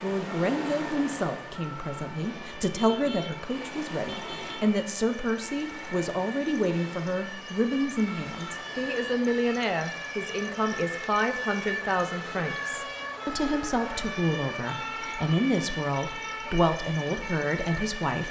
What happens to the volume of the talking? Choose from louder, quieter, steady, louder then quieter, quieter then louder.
steady.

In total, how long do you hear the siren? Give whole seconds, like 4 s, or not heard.
18 s.